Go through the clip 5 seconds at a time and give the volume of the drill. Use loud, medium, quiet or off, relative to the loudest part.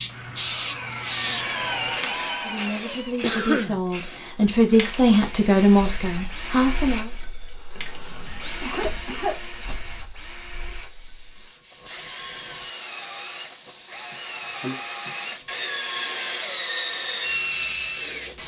loud, medium, medium, loud.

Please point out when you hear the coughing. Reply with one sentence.
You can hear the coughing from 3.2 to 3.8 s, from 7.8 to 9.8 s and from 14.1 to 14.8 s.